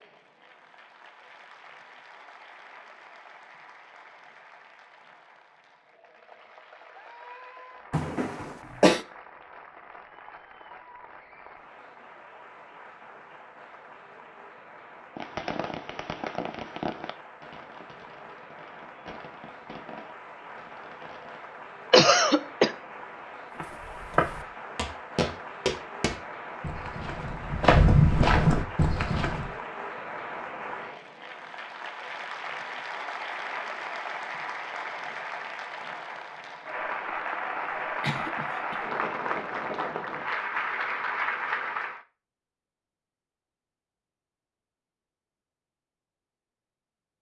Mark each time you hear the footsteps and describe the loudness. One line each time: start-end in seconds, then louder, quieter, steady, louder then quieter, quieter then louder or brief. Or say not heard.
23.6-29.5 quieter then louder.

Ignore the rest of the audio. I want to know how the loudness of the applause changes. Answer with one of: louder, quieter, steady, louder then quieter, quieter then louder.
louder.